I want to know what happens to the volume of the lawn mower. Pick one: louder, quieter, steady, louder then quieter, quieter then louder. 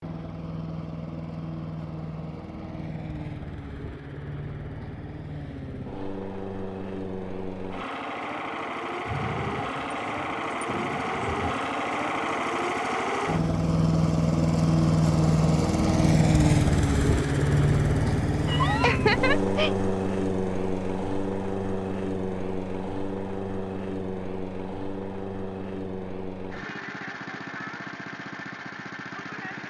louder then quieter.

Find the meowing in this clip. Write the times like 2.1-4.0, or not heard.
18.4-19.8.